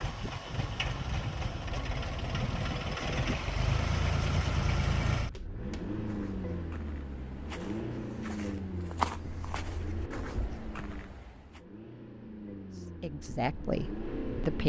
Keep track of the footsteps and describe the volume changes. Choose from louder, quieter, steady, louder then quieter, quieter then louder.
louder then quieter.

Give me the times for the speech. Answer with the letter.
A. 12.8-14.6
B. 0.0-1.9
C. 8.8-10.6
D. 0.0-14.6
A.